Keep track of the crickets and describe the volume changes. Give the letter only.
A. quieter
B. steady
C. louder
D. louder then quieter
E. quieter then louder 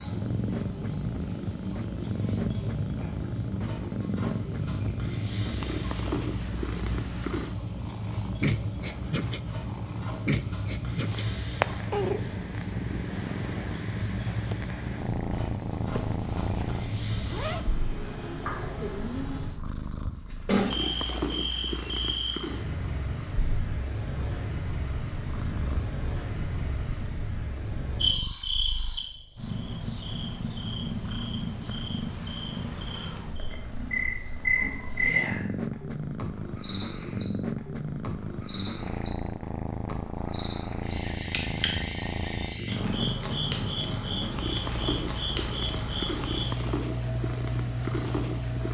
B.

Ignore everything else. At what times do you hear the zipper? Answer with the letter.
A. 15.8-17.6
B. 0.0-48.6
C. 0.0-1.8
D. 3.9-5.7
A.